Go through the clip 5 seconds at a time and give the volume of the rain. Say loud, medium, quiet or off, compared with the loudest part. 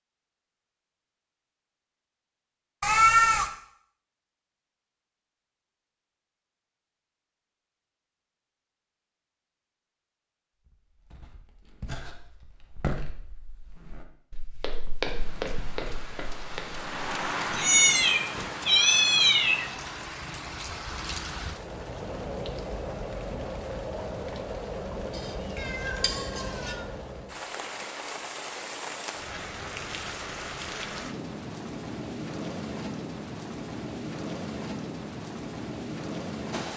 off, off, off, loud, loud, loud, loud, loud.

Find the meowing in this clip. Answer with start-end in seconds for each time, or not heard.
2.8-3.5, 17.6-19.6, 25.1-26.8.